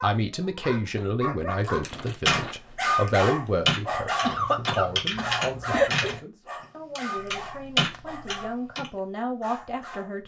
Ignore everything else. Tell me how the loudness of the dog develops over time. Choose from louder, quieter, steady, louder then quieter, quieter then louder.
louder then quieter.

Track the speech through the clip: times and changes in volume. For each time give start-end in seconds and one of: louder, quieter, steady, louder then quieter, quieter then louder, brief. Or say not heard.
0.0-10.2 quieter then louder.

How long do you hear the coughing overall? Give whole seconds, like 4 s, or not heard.
2 s.